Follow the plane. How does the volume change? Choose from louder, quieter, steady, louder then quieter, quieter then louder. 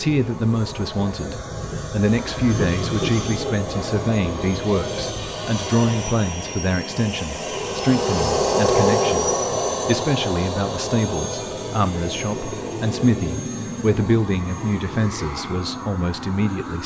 louder then quieter.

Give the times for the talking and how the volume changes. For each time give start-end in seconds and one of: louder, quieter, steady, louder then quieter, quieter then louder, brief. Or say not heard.
0.0-16.8 steady.